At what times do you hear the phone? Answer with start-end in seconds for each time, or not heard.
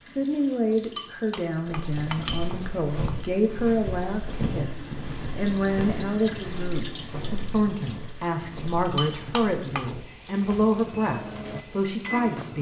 not heard.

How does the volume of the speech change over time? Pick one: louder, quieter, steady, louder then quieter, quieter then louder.
steady.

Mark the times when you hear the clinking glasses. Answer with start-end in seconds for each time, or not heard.
0.7-3.1, 8.8-9.9.